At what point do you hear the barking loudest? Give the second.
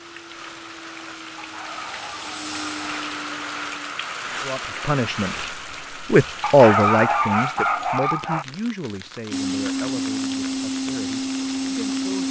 7 s.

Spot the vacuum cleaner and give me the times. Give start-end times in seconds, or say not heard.
0.0-3.9, 9.3-12.2.